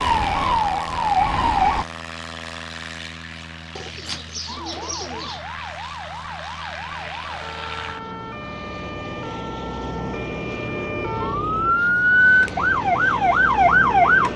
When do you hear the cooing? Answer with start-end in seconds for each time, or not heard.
3.8-5.5.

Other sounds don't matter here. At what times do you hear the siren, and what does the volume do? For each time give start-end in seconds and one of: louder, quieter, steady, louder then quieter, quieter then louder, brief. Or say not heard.
0.0-1.9 brief
4.5-14.3 louder.